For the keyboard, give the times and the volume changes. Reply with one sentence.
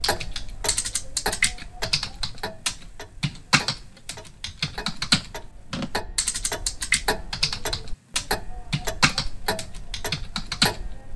The keyboard can be heard from 0.0 to 10.8 s, at a steady volume.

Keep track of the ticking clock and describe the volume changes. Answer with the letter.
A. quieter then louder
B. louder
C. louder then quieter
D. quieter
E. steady
A.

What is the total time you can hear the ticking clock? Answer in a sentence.
The ticking clock can be heard for 11 seconds in total.